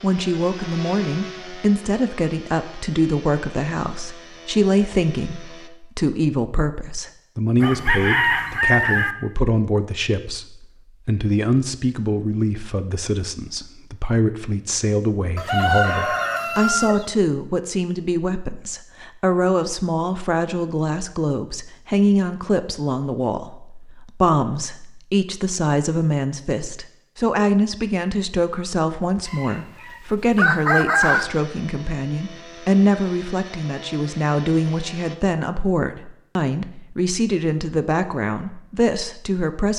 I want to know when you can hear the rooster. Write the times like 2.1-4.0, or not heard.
7.6-9.2, 15.3-17.1, 29.2-31.2.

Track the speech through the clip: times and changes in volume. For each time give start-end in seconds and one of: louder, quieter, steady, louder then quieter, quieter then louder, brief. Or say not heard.
0.0-39.7 steady.